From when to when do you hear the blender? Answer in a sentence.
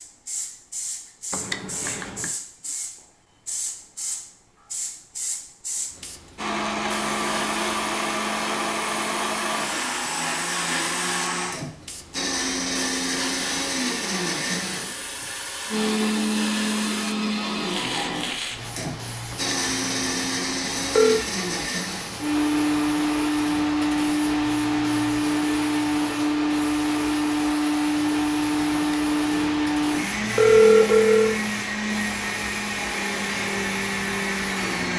You can hear the blender from 6.3 to 34.9 s.